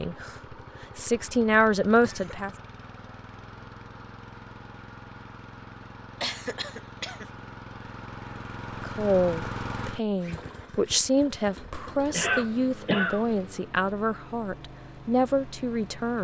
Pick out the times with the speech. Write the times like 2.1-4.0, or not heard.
0.0-2.5, 8.8-16.2.